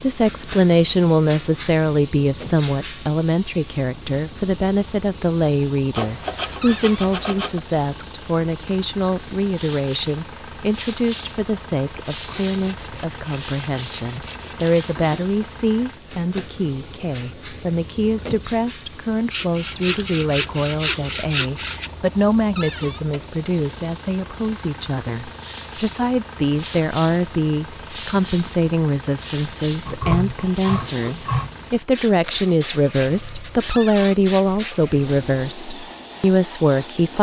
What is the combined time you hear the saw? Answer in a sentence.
You can hear the saw for 8 seconds altogether.